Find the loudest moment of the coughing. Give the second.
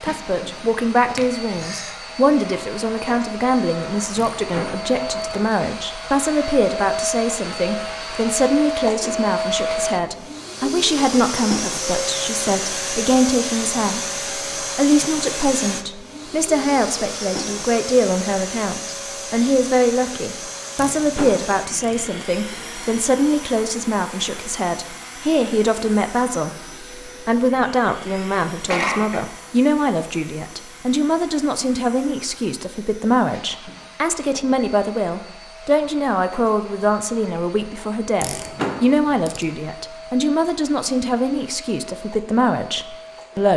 29 s.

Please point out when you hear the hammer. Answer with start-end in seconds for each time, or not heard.
not heard.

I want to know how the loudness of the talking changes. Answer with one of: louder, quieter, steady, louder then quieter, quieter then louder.
steady.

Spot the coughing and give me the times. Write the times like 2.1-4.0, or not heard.
1.1-1.9, 28.1-29.2.